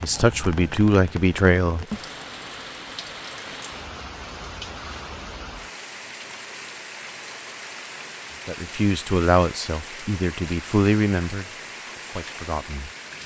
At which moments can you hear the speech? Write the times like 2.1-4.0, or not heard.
0.0-1.9, 8.4-12.9.